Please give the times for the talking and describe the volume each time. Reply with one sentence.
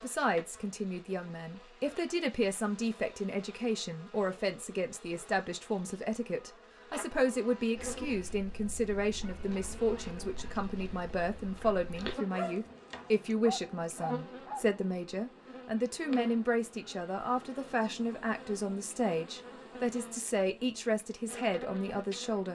The talking can be heard from 0.0 to 22.5 s, at a steady volume.